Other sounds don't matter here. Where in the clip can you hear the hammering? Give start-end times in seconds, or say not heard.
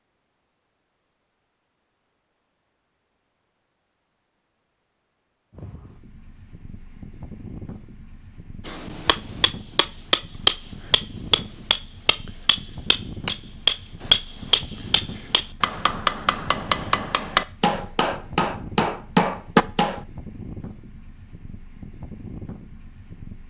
8.7-20.0.